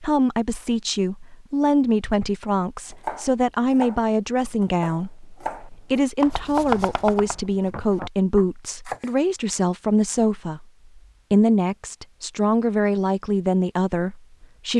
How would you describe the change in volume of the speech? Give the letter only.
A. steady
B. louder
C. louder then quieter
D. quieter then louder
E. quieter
A.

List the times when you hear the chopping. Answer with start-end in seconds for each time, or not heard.
2.9-9.2.